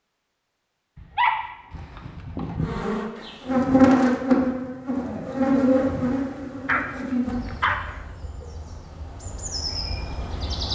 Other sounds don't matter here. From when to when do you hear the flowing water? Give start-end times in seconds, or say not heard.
not heard.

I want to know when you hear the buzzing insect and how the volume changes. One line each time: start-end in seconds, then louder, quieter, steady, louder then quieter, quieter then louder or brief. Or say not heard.
2.6-10.7 quieter then louder.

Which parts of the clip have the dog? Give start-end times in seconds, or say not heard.
0.9-2.8, 6.7-8.0.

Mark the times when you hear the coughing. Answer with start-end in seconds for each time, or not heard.
not heard.